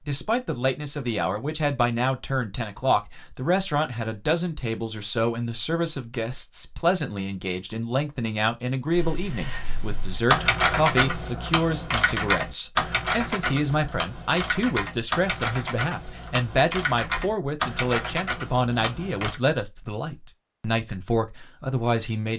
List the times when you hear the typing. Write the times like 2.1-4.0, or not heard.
8.9-19.4.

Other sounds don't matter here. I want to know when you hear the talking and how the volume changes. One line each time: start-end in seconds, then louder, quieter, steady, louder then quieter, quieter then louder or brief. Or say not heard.
0.1-22.3 steady.